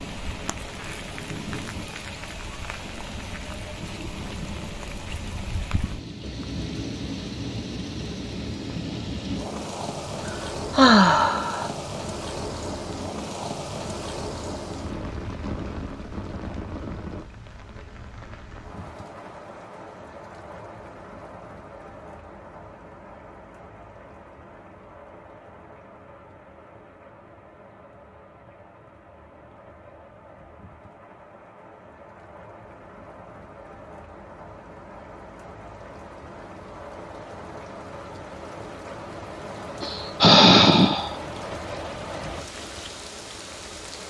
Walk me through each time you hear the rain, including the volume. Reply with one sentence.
You can hear the rain from 0.0 to 44.0 s, getting quieter then louder.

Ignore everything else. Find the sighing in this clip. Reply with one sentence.
You can hear the sighing from 10.2 to 11.7 s and from 39.8 to 41.1 s.